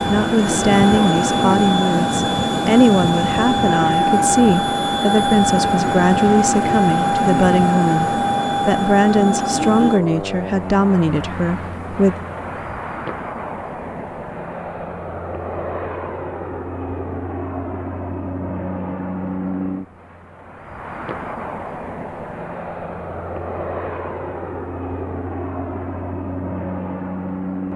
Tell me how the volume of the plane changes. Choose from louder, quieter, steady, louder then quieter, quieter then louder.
quieter.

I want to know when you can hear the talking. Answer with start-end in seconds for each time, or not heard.
0.1-12.2.